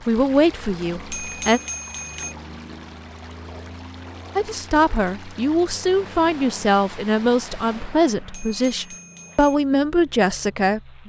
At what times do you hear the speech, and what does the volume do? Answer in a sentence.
The speech can be heard briefly from 0.1 to 1.6 s; and from 4.3 to 11.0 s, at a steady volume.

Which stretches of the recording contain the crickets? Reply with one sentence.
You can't hear the crickets here.